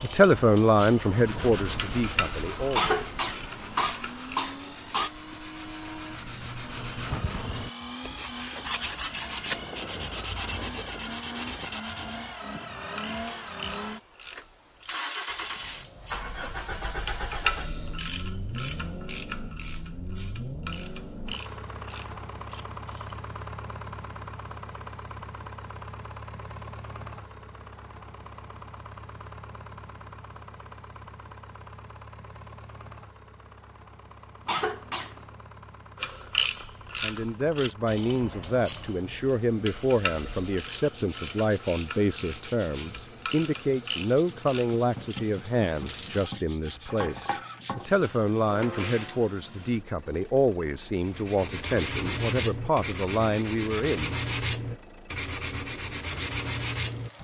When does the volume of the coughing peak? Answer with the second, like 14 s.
3 s.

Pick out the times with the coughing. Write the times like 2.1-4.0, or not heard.
2.7-5.1, 34.5-35.2.